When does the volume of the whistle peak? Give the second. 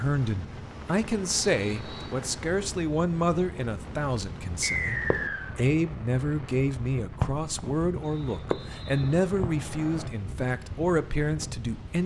5 s.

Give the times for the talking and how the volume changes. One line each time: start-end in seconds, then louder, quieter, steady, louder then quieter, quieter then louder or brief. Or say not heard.
0.0-12.0 steady.